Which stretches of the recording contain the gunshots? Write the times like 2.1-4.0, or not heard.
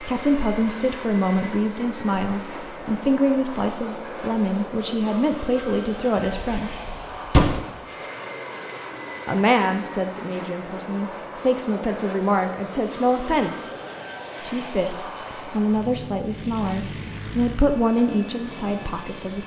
6.2-7.7.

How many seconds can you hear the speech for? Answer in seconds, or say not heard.
16 s.